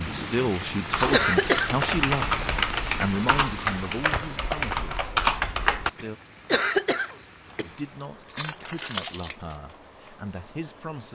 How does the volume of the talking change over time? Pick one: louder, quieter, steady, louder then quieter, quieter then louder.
quieter.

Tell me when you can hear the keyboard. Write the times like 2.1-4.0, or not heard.
0.9-5.9.